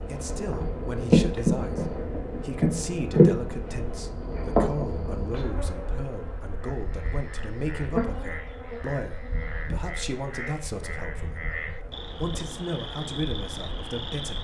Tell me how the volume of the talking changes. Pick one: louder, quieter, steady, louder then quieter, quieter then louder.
steady.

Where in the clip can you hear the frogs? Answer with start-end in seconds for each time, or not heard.
6.6-14.3.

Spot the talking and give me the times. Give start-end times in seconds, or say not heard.
0.1-14.3.